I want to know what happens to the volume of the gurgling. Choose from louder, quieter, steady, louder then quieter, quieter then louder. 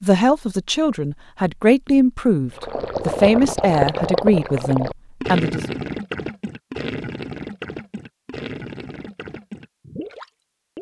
quieter.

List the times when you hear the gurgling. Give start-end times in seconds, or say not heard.
2.5-10.7.